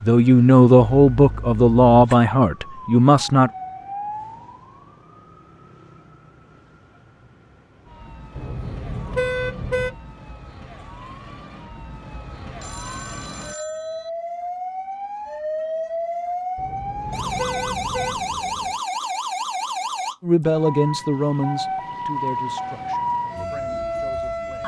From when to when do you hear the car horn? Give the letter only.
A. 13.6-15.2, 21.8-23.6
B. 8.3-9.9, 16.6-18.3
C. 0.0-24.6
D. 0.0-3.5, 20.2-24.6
B.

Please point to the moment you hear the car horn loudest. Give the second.
9 s.